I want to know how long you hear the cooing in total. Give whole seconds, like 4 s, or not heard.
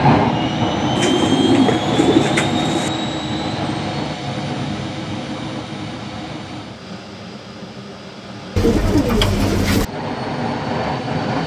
3 s.